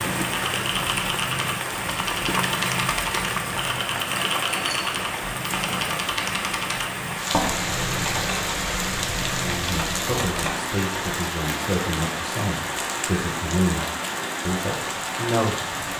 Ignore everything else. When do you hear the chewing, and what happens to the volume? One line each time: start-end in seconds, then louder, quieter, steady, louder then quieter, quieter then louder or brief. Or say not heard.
not heard.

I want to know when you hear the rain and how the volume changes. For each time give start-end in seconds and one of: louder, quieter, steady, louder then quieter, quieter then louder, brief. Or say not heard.
0.0-15.9 steady.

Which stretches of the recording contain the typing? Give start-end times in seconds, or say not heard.
0.2-10.6.